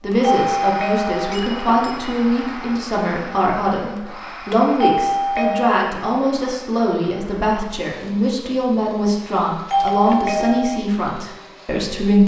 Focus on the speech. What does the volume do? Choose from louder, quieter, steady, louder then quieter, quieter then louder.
steady.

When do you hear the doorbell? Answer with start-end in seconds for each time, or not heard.
0.2-1.4, 4.8-5.9, 9.7-10.8.